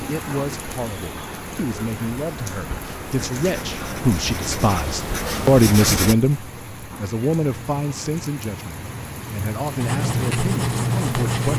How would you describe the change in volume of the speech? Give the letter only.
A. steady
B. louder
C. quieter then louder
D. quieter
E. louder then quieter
E.